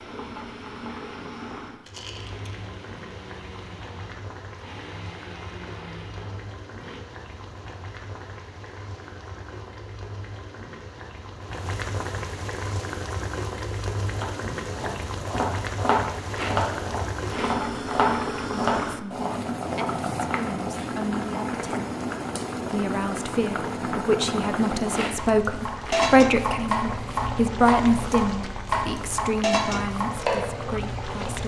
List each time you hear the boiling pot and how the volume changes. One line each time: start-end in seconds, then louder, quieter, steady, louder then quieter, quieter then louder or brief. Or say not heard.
0.0-31.4 louder.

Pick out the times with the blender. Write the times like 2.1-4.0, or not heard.
0.0-7.0.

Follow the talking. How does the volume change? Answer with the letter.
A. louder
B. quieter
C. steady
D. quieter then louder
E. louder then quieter
E.